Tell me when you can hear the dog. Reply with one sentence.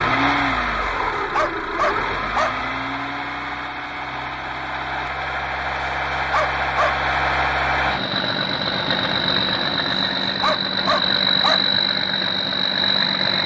The dog can be heard from 0.8 to 2.5 s, from 5.8 to 7.0 s and from 9.9 to 11.6 s.